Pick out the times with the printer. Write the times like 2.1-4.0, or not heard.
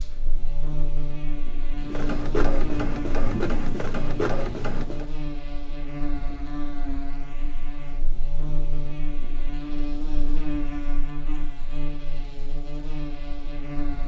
1.8-5.0.